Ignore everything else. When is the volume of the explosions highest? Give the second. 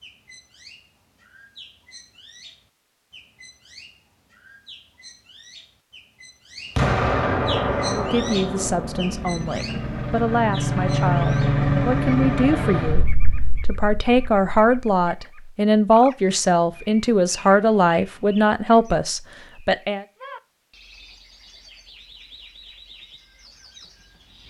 7 s.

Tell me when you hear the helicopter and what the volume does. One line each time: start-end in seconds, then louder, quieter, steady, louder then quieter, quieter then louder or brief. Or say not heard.
7.6-13.1 louder.